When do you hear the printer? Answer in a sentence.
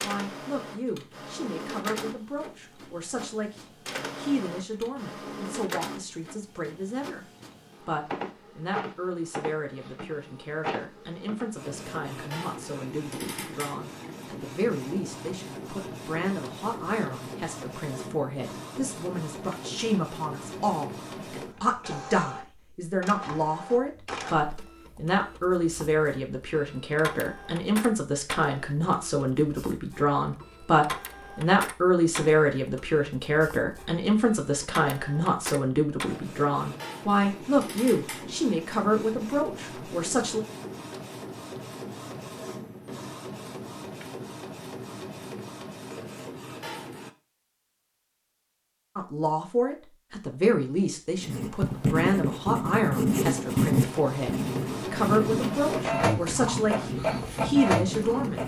You can hear the printer from 0.0 to 47.1 s and from 53.1 to 58.4 s.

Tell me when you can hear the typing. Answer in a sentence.
You can't hear the typing here.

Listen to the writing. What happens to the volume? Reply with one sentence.
The volume of the writing goes down.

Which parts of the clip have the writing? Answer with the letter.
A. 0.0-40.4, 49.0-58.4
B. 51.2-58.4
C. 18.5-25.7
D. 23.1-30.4
B.